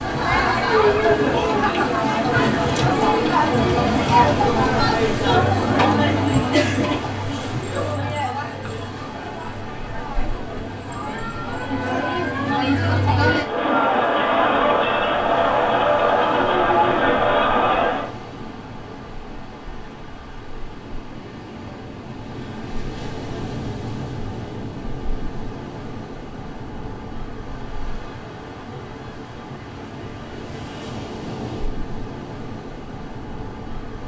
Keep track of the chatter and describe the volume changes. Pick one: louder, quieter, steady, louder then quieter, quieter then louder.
quieter then louder.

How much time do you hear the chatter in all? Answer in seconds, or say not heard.
18 s.